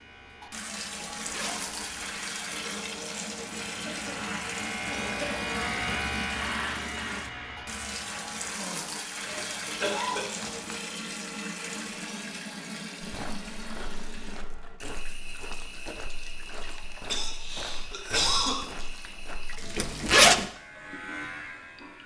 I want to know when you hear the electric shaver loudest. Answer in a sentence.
The loudest moment of the electric shaver is at 6 seconds.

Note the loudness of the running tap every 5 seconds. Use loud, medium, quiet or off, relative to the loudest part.
loud, loud, loud, medium, medium.